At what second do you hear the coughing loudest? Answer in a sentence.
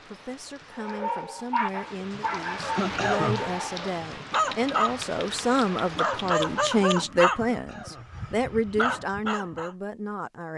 The volume of the coughing peaks at 3 seconds.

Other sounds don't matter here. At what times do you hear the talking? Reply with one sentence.
The talking can be heard from 0.1 to 10.5 s.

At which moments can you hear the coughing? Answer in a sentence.
You can hear the coughing from 2.6 to 3.5 s and from 7.5 to 8.2 s.